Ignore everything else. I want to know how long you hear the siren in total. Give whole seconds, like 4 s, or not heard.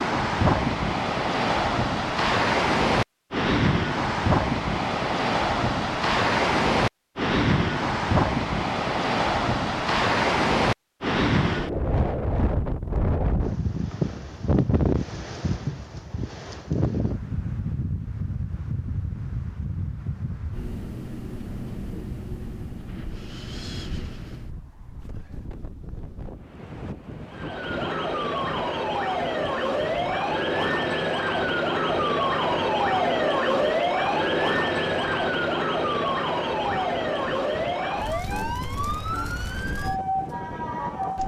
14 s.